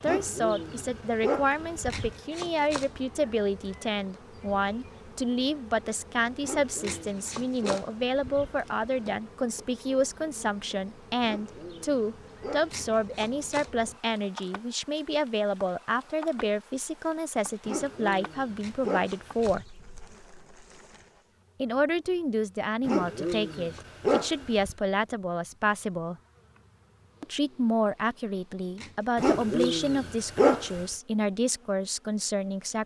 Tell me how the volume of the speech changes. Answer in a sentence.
The volume of the speech stays about the same.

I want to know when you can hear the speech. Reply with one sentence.
The speech can be heard from 0.0 to 19.6 s, from 21.6 to 26.1 s and from 27.2 to 32.8 s.